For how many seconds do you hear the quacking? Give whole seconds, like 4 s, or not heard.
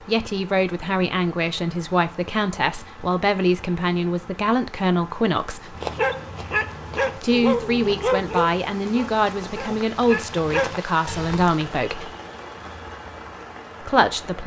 not heard.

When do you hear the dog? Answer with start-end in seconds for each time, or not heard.
5.8-11.6.